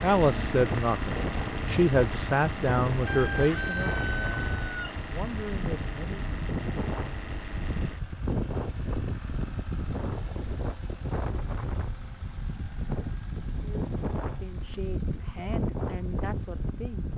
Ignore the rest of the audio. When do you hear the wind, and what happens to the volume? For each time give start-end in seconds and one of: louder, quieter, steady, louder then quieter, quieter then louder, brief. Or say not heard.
0.0-17.1 steady.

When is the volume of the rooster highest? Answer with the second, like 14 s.
4 s.